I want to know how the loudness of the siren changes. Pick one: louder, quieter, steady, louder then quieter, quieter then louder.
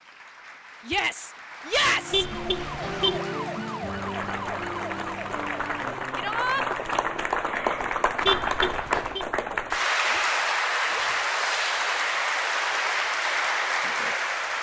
quieter.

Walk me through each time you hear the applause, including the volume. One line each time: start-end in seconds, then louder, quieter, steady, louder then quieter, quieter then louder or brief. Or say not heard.
0.0-14.5 louder.